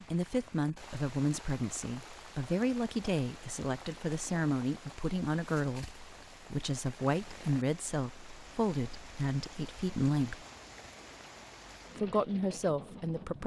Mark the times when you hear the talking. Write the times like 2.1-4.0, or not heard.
0.1-10.4, 11.9-13.4.